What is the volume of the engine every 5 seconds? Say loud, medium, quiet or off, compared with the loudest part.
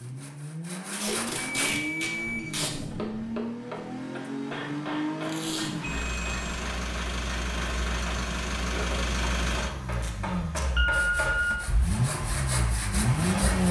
medium, loud, loud.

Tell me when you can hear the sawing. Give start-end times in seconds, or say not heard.
0.0-1.7, 10.9-13.6.